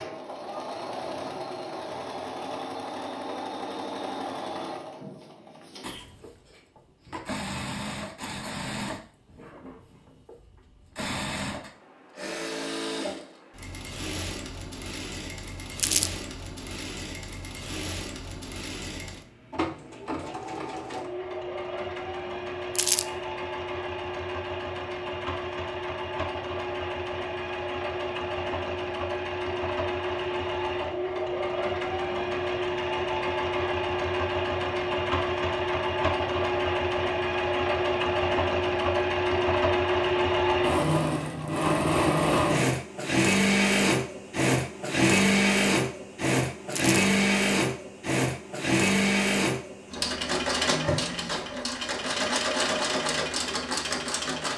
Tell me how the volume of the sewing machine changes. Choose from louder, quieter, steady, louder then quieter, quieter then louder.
louder.